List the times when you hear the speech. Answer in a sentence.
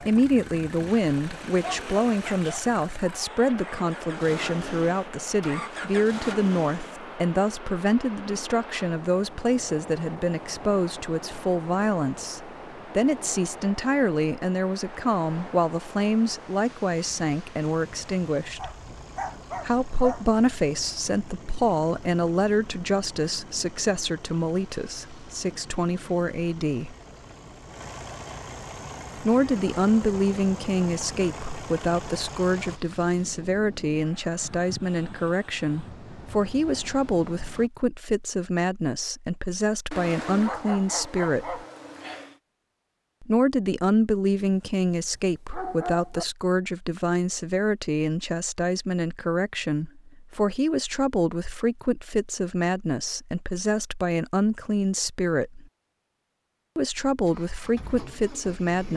You can hear the speech from 0.0 to 18.7 s, from 19.6 to 26.9 s, from 29.1 to 41.6 s, from 43.2 to 55.6 s and from 56.8 to 58.9 s.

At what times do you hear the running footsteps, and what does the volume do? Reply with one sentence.
You can't hear the running footsteps here.